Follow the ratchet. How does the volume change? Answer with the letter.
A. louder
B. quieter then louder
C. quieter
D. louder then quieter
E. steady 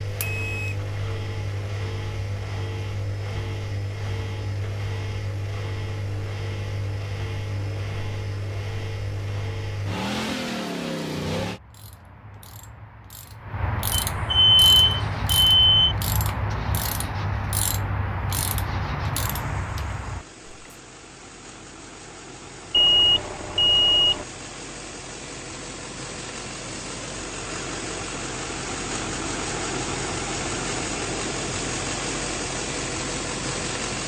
A.